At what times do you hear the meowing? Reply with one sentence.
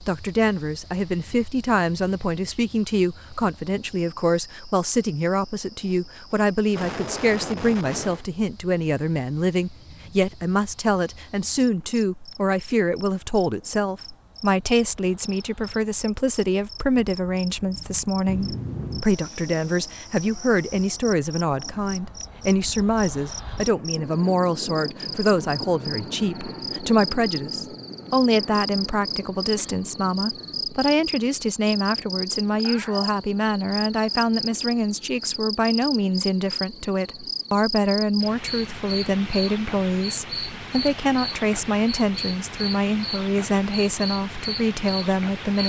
You can hear the meowing from 18.2 to 19.1 s and from 32.5 to 33.2 s.